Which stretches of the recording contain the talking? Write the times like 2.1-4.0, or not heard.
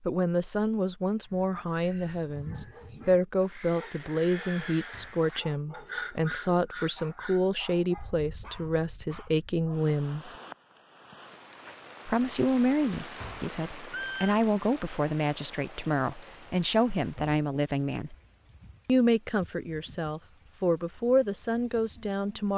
0.1-10.3, 12.1-18.1, 18.9-22.5.